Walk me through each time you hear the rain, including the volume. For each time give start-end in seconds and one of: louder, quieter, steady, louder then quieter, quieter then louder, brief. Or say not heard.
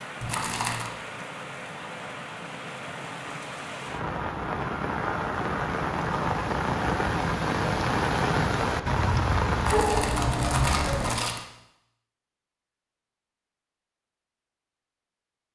0.0-11.2 louder.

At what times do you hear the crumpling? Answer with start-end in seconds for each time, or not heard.
0.2-0.9, 9.6-11.4.